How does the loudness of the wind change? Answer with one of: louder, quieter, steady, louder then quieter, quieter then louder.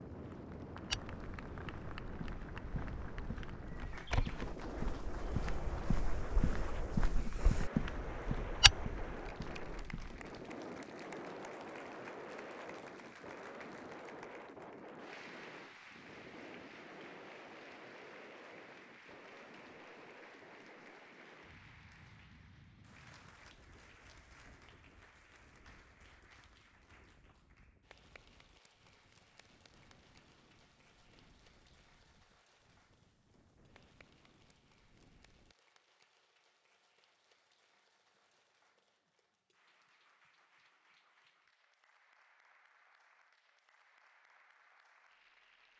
quieter.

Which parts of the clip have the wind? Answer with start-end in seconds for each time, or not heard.
0.0-35.5.